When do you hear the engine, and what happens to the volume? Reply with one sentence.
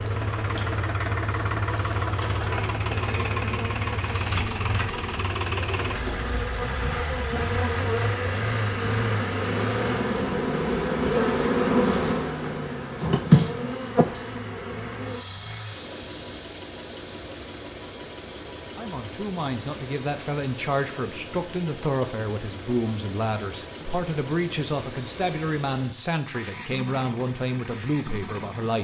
You can hear the engine from 0.0 to 28.8 s, getting quieter.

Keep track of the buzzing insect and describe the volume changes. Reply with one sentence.
The volume of the buzzing insect goes up, then down.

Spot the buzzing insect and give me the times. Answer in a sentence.
The buzzing insect can be heard from 0.0 to 28.8 s.